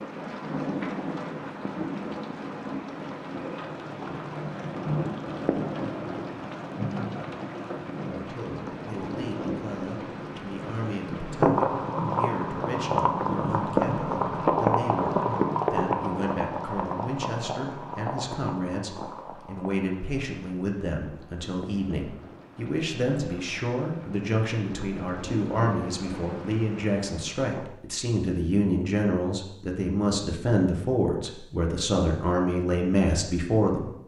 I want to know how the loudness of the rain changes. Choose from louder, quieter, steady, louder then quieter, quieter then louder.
louder then quieter.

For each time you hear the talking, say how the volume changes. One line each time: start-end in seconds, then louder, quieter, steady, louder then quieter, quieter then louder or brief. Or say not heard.
8.2-33.9 louder.